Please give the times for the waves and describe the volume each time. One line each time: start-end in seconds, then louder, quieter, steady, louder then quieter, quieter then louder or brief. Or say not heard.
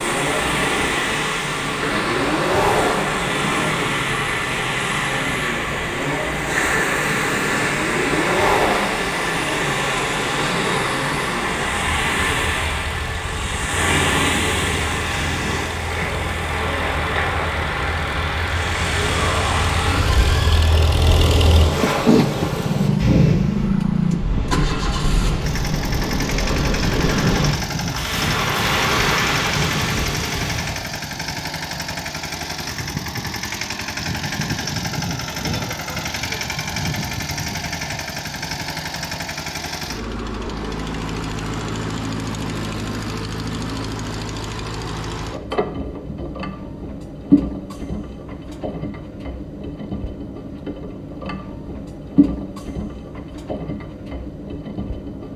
0.0-30.9 steady.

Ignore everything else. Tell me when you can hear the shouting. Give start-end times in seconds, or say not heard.
18.9-20.9.